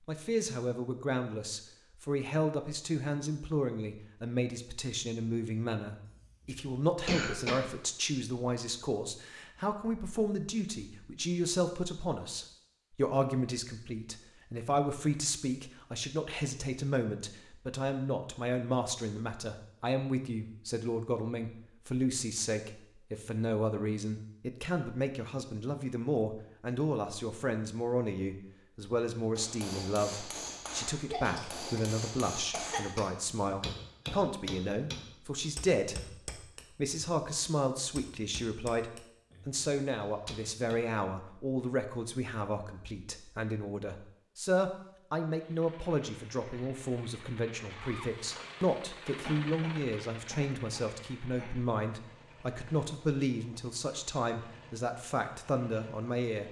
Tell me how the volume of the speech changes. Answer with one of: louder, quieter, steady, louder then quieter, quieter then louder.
steady.